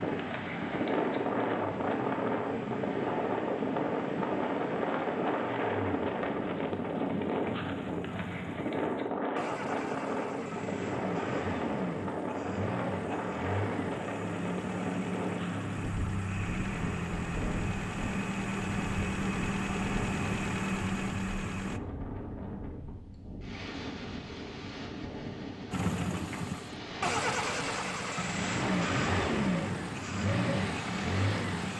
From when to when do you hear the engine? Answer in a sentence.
The engine can be heard from 0.0 to 21.8 s and from 25.7 to 31.7 s.